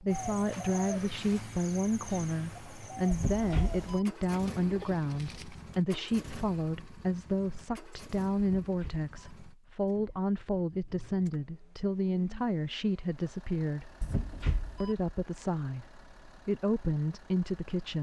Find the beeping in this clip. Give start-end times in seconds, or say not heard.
3.1-4.0, 8.3-9.1, 14.0-14.9.